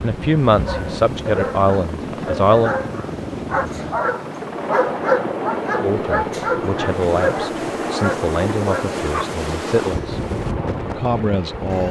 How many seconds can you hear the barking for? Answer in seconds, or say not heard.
9 s.